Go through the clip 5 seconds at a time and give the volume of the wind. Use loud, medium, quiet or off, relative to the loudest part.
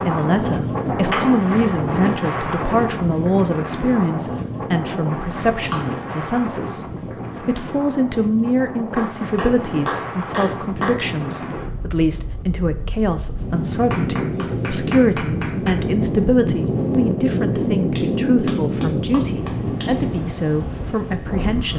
loud, medium, medium, loud, medium.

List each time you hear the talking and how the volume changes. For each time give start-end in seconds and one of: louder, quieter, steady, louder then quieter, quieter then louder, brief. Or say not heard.
0.1-21.7 steady.